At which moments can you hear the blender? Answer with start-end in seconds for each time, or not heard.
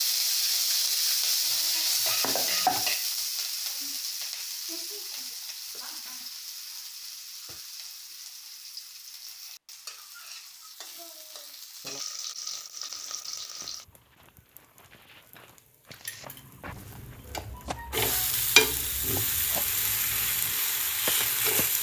not heard.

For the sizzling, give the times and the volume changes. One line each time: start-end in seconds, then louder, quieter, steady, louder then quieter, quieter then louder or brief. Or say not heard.
0.0-21.7 quieter then louder.